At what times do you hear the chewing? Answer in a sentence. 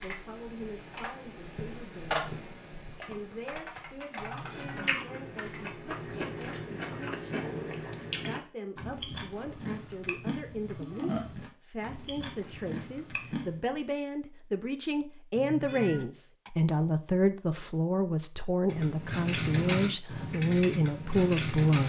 The chewing can be heard from 4.4 to 13.7 s.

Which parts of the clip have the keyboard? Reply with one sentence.
The keyboard can be heard from 0.0 to 6.7 s and from 18.6 to 21.8 s.